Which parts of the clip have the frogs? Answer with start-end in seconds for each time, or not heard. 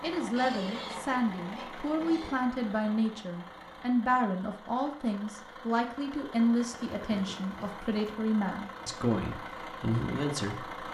not heard.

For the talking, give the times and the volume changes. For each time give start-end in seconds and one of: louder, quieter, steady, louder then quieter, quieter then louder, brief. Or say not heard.
0.0-10.8 steady.